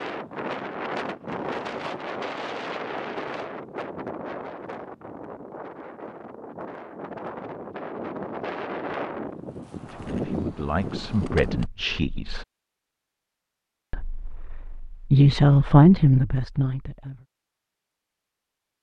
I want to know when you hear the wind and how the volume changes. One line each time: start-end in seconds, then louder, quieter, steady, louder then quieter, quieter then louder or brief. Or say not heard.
0.0-11.7 quieter then louder.